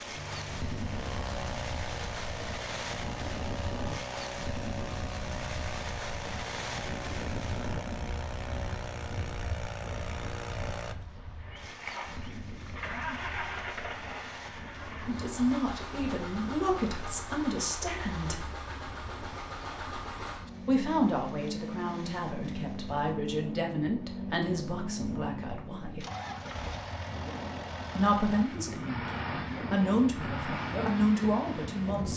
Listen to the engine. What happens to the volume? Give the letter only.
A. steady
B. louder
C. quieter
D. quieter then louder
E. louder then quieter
A.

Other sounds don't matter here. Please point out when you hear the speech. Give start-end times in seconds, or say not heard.
15.1-18.4, 20.6-26.1, 27.9-32.1.